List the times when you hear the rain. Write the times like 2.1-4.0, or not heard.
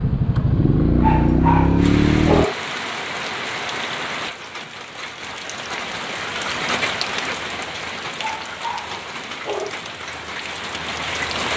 1.8-11.5.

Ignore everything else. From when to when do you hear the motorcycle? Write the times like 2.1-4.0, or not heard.
0.0-2.5.